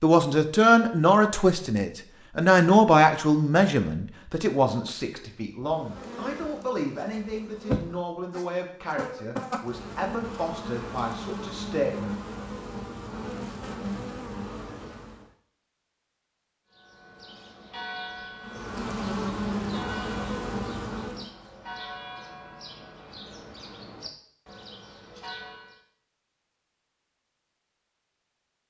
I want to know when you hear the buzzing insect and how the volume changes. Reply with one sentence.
You can hear the buzzing insect from 5.6 to 15.3 s, at a steady volume; and briefly from 18.4 to 21.3 s.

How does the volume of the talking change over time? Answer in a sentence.
The loudness of the talking goes down.